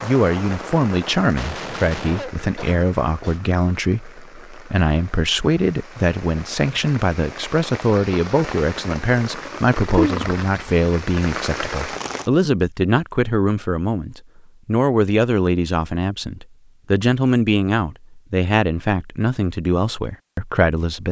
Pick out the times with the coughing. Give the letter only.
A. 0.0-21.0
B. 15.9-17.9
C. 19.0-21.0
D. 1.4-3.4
D.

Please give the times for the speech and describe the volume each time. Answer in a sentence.
The speech can be heard from 0.0 to 21.0 s, at a steady volume.